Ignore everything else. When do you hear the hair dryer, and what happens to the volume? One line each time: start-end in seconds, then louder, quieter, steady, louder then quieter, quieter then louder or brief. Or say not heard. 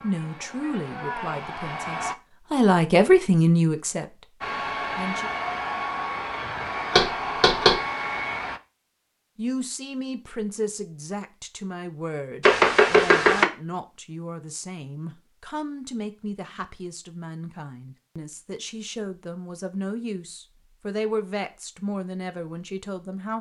0.0-2.1 brief
4.4-8.6 steady.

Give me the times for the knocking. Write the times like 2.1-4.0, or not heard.
6.9-7.8, 12.4-13.4.